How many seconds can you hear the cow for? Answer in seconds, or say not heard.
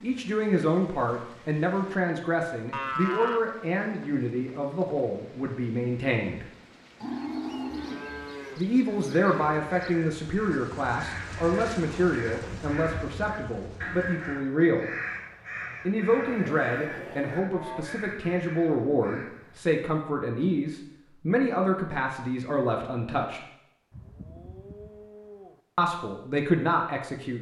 7 s.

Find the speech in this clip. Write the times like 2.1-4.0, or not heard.
0.0-6.5, 8.6-14.9, 15.8-23.4, 25.8-27.3.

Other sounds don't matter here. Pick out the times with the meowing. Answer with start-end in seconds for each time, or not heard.
not heard.